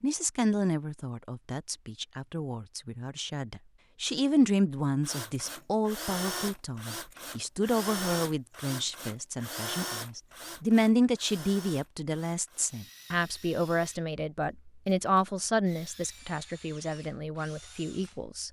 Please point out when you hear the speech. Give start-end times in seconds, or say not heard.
0.0-18.4.